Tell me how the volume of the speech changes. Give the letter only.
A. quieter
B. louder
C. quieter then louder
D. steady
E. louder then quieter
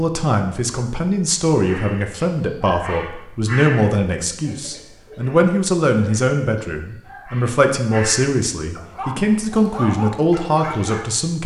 D.